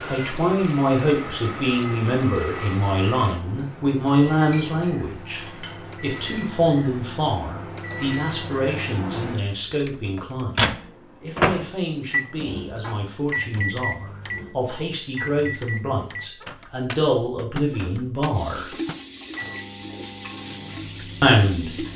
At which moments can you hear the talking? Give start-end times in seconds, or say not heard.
0.1-5.4, 6.0-18.7, 21.2-21.7.